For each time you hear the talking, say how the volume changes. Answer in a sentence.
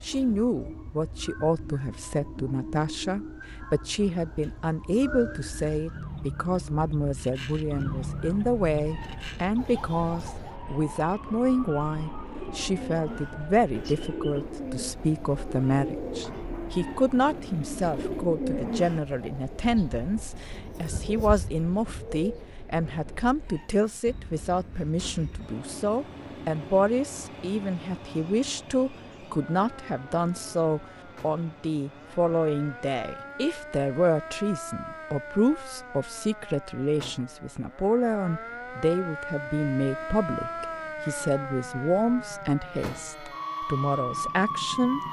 The talking can be heard from 0.0 to 45.0 s, at a steady volume.